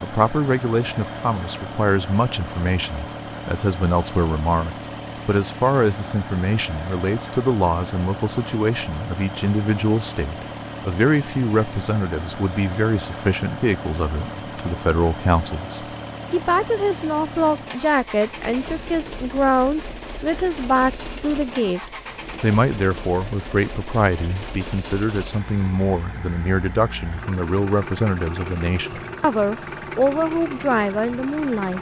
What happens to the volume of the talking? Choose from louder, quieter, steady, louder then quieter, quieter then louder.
steady.